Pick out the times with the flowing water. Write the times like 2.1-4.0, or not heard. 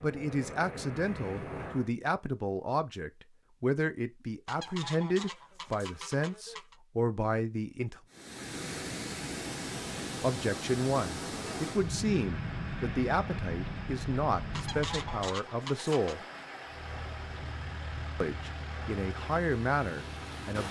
8.1-20.6.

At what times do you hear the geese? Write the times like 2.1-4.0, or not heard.
4.5-6.8, 14.5-16.2.